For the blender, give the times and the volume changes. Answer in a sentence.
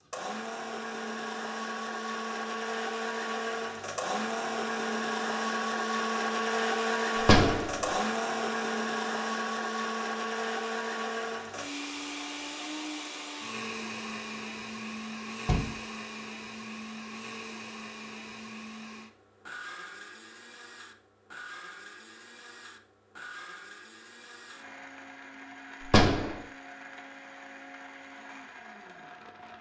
The blender can be heard from 0.0 to 29.5 s, getting quieter.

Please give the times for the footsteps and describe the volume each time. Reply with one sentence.
You can't hear the footsteps here.